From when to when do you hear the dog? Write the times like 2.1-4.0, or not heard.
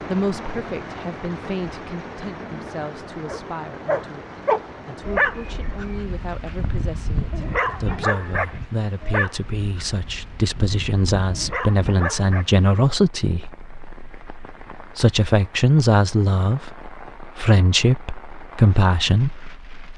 3.2-12.4.